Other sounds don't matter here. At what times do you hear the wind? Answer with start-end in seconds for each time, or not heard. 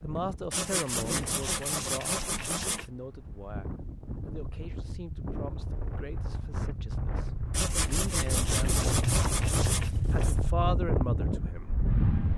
0.0-12.3.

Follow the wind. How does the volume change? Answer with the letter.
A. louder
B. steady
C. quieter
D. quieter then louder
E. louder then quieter
A.